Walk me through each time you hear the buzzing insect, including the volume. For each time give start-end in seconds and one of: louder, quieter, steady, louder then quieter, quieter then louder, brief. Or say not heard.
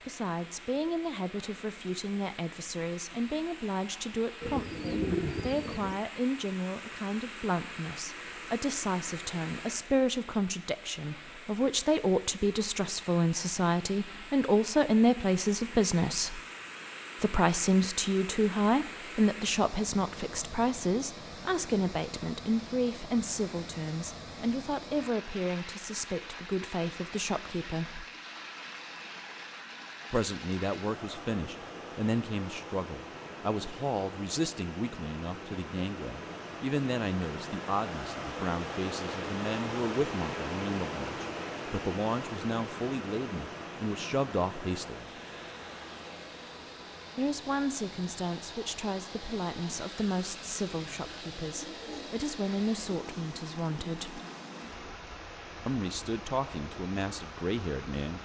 not heard.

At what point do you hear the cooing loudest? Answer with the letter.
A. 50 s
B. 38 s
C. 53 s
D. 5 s
D.